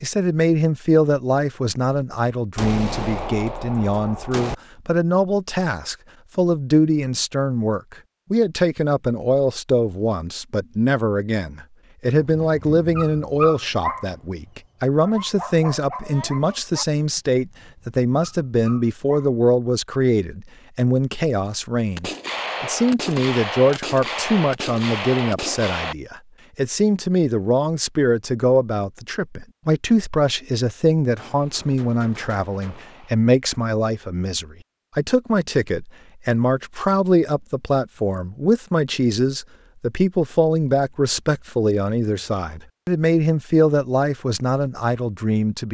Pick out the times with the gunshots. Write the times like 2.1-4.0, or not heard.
2.5-4.5, 21.9-25.9, 31.1-33.1.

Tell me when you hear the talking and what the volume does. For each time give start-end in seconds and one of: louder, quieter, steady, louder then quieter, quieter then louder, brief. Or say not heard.
0.0-45.6 steady.